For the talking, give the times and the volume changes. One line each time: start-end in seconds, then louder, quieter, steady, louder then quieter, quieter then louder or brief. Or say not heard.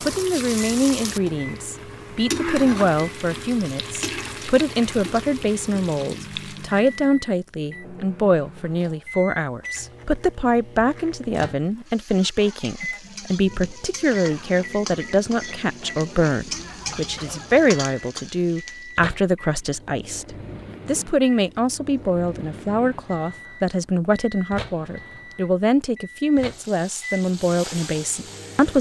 0.0-28.7 steady.